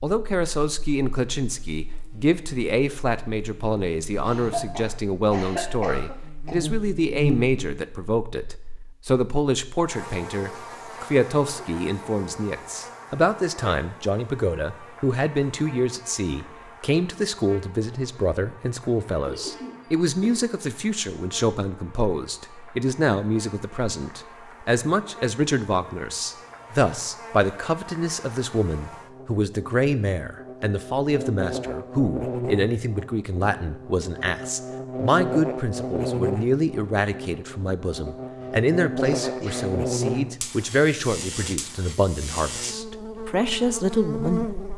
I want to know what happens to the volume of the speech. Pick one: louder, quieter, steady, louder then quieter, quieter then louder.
steady.